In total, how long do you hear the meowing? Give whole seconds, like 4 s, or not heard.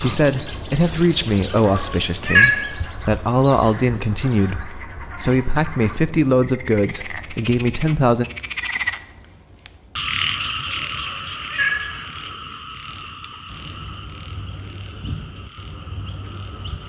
2 s.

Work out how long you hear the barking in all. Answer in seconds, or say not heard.
not heard.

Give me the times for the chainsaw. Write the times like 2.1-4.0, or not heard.
not heard.